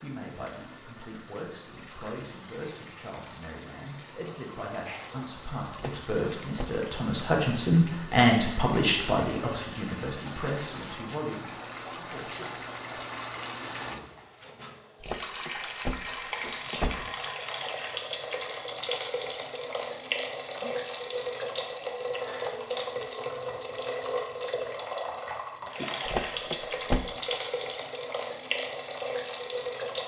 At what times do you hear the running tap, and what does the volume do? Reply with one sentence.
The running tap can be heard from 0.0 to 30.0 s, getting louder.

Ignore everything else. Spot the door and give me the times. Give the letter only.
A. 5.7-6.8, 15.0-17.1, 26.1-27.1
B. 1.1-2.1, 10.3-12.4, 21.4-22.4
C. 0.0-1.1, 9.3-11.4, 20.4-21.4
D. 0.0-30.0
A.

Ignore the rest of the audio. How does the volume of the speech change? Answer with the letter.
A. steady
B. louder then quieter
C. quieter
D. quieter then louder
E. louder
B.